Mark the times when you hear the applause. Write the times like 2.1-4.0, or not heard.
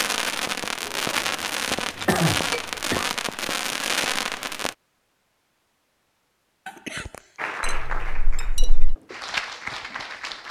7.3-10.4.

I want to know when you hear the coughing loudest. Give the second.
2 s.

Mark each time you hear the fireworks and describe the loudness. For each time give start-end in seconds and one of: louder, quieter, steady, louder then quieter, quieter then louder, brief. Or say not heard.
0.0-4.8 steady.